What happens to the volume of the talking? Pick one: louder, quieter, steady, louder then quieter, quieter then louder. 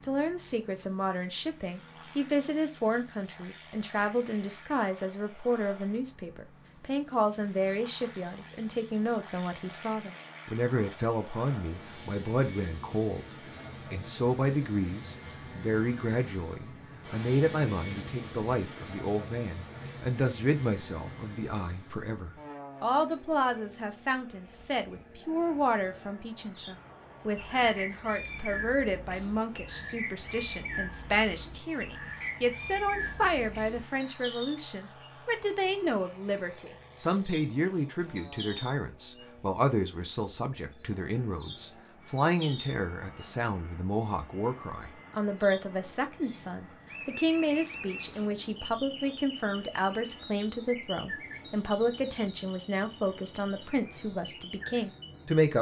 steady.